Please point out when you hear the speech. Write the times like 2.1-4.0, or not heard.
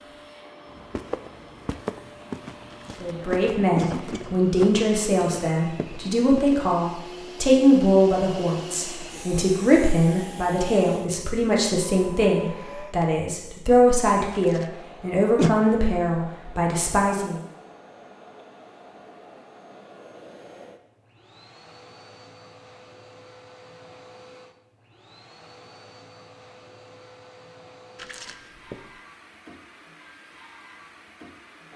3.0-17.4.